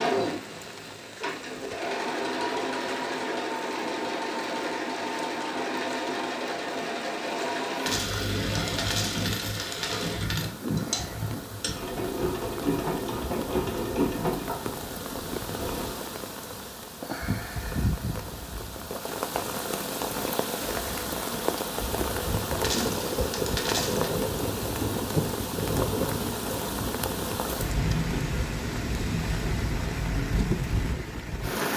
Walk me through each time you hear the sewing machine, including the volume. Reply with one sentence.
The sewing machine can be heard from 0.0 to 16.1 s, at a steady volume.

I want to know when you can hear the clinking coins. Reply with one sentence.
The clinking coins can be heard from 7.8 to 10.5 s and from 22.6 to 24.1 s.